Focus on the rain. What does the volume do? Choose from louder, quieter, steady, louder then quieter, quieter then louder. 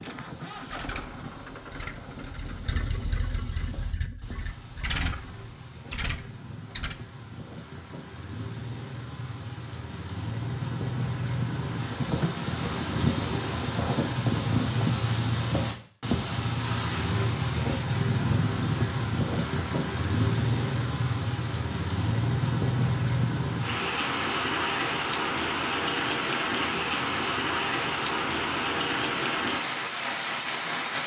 louder.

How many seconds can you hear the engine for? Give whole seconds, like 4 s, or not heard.
7 s.